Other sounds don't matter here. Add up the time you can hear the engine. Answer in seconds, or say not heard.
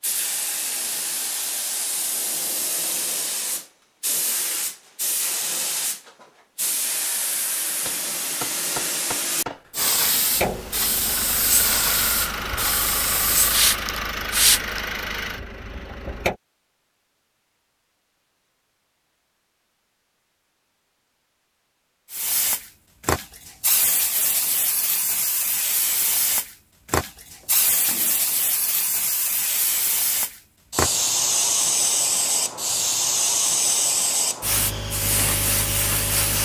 6 s.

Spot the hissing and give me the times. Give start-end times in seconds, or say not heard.
0.0-14.8, 22.1-36.4.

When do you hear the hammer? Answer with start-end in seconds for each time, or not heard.
7.8-9.7, 27.4-28.2.